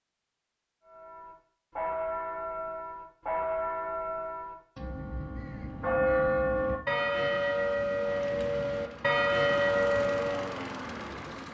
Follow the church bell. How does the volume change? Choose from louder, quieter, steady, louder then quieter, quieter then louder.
louder.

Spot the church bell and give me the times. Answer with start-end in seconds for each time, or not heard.
0.8-10.6.